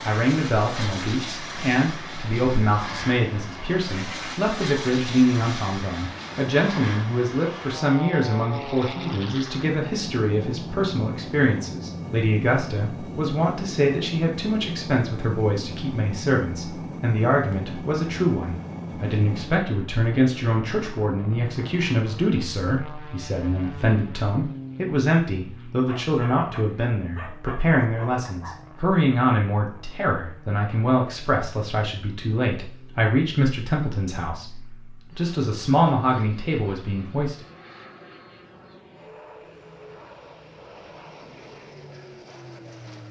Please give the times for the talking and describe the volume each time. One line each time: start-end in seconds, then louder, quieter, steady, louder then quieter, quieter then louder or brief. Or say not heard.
0.1-37.5 steady.